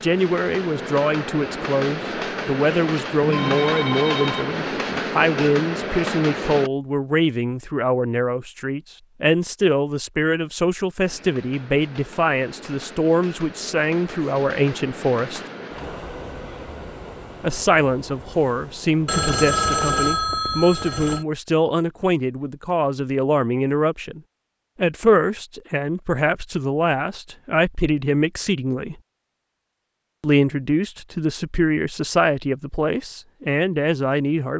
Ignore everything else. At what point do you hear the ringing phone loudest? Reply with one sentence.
The volume of the ringing phone peaks at 20 seconds.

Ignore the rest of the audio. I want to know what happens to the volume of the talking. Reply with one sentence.
The volume of the talking stays about the same.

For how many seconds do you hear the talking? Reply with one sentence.
The talking can be heard for 31 seconds in total.